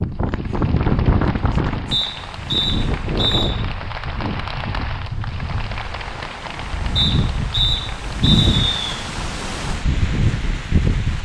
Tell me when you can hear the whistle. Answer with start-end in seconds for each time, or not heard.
1.9-3.5, 7.0-8.9.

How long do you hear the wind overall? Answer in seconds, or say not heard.
11 s.